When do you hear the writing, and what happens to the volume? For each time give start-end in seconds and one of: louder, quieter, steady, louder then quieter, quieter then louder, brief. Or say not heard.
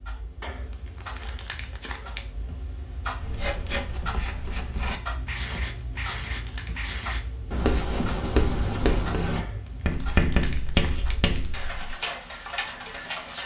3.2-11.9 louder.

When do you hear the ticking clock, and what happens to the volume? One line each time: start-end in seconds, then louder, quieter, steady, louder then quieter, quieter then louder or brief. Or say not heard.
0.0-13.4 louder.